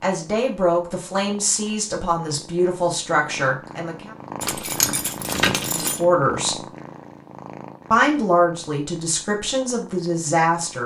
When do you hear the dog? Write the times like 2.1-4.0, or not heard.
not heard.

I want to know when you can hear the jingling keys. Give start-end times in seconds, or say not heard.
4.4-6.0.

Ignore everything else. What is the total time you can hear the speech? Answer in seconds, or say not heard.
8 s.